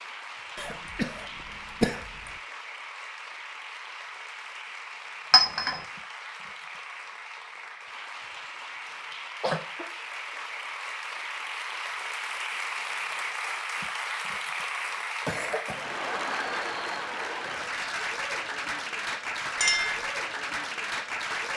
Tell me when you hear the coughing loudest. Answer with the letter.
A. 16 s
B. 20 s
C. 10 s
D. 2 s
D.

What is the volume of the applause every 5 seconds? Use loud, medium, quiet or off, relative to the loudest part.
medium, medium, loud, loud, loud.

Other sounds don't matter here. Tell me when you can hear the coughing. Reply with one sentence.
The coughing can be heard from 0.6 to 2.3 s, from 8.9 to 9.8 s and from 15.2 to 15.8 s.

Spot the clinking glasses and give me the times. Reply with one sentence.
The clinking glasses can be heard from 5.3 to 5.8 s and from 19.6 to 20.1 s.